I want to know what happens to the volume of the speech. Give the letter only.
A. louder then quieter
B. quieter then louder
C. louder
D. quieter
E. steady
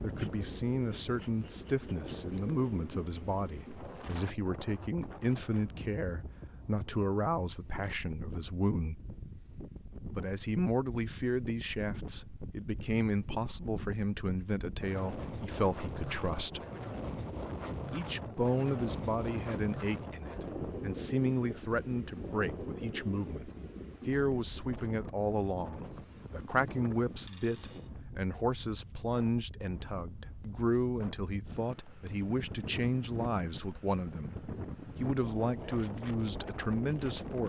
E.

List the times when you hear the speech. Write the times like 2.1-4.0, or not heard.
0.0-9.0, 10.2-16.6, 17.9-37.4.